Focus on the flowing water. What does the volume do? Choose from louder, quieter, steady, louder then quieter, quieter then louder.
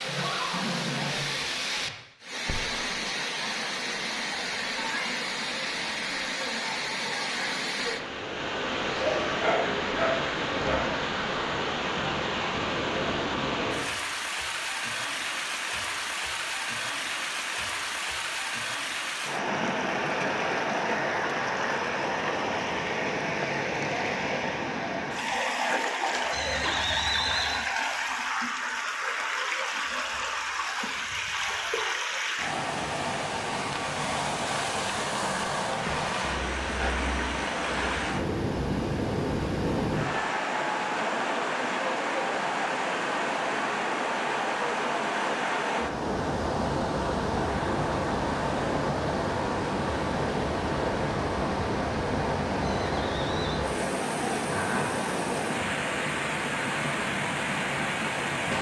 steady.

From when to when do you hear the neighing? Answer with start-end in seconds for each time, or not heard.
0.0-1.5, 26.3-27.6, 52.6-53.6.